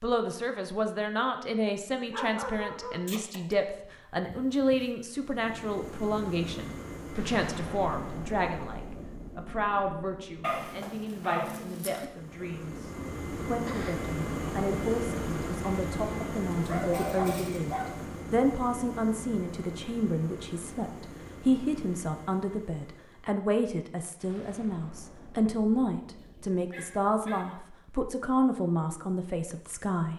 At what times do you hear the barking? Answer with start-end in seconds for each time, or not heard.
2.1-3.5, 4.2-4.9, 10.4-12.1, 16.6-18.0, 26.1-27.7.